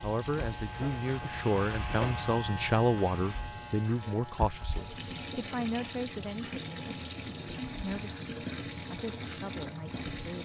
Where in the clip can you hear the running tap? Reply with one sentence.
You can hear the running tap from 0.0 to 10.4 s.